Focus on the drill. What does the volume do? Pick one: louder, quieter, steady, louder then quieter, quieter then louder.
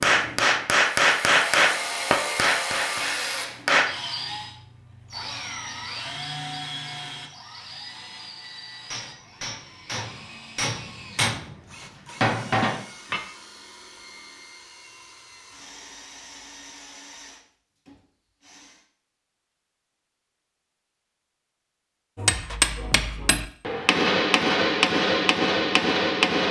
quieter.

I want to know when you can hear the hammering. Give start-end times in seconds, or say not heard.
0.0-4.0, 8.9-13.2, 22.1-26.4.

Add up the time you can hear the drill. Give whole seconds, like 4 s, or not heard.
19 s.